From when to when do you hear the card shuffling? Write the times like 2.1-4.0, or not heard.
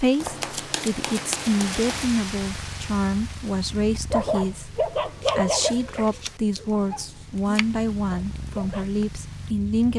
0.2-2.1, 5.2-7.7.